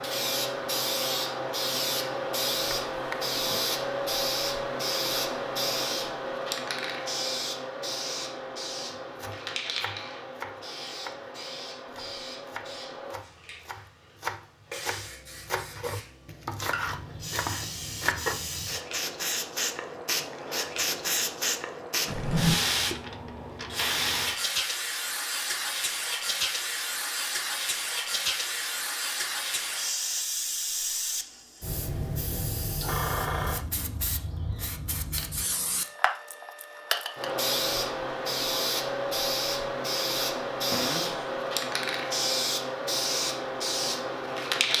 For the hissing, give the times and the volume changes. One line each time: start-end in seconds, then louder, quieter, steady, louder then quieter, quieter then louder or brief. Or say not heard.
0.0-44.7 quieter then louder.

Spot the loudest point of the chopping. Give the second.
18 s.